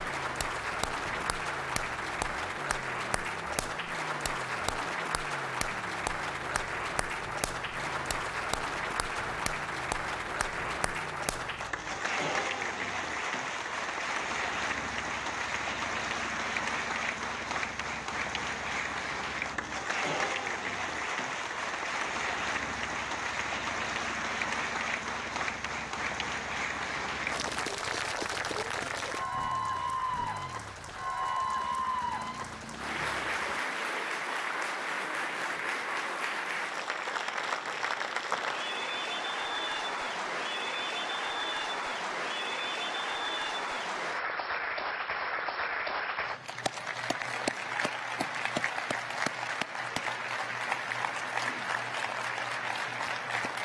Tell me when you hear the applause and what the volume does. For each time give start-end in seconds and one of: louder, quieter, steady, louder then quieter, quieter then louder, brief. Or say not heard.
0.0-53.6 steady.